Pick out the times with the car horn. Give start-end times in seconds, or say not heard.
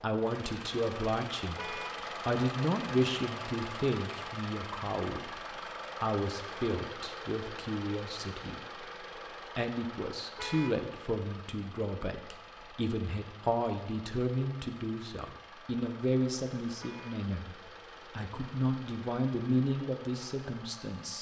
1.6-2.0, 10.3-10.8, 16.8-17.2.